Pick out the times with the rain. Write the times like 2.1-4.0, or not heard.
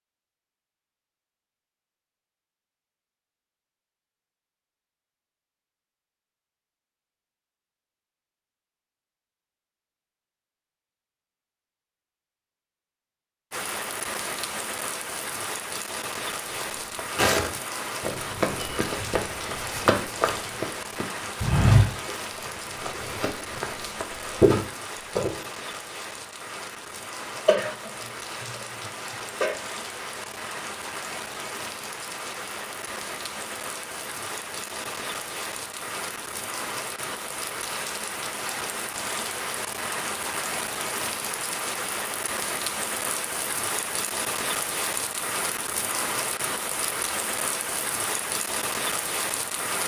13.5-49.8.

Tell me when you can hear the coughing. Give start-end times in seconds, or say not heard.
27.4-29.6.